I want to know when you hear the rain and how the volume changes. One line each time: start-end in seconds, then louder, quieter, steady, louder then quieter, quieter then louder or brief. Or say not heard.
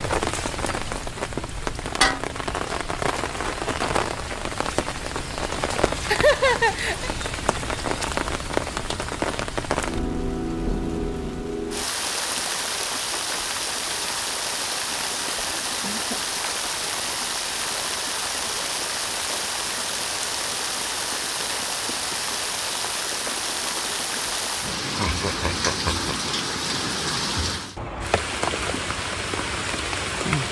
0.0-30.4 steady.